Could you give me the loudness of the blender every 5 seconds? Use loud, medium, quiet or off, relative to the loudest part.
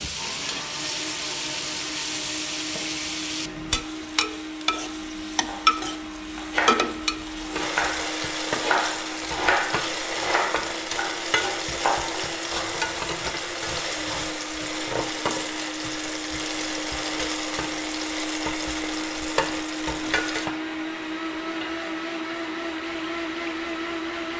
medium, medium, medium, loud, loud.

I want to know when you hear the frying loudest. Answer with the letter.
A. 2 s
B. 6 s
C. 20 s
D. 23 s
B.